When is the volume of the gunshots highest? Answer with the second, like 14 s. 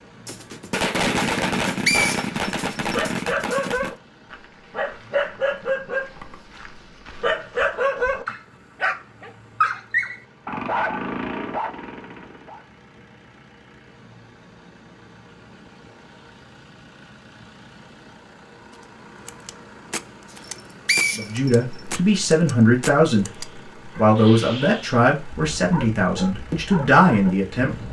1 s.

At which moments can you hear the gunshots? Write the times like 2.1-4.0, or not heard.
0.2-4.0, 19.2-23.4.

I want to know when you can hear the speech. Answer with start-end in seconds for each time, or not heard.
21.1-27.8.